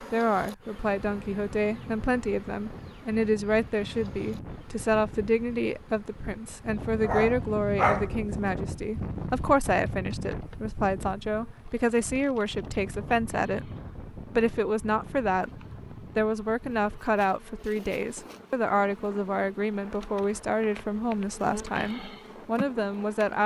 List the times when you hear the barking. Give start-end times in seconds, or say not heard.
7.0-8.4.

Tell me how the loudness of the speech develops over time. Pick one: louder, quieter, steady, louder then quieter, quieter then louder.
steady.